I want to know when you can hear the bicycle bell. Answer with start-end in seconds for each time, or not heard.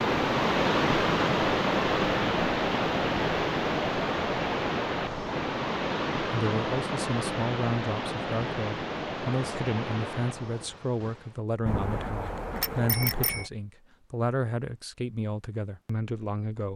11.7-13.5.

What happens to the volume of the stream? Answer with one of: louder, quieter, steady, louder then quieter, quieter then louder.
quieter.